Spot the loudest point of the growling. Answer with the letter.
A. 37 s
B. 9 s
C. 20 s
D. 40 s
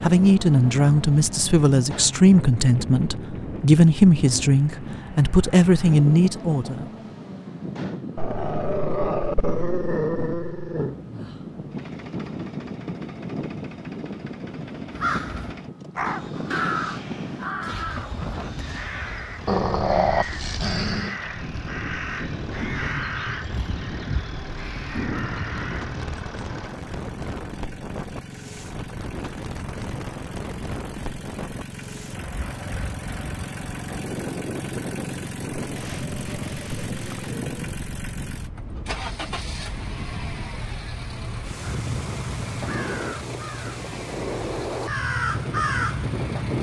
C.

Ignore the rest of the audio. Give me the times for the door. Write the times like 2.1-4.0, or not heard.
not heard.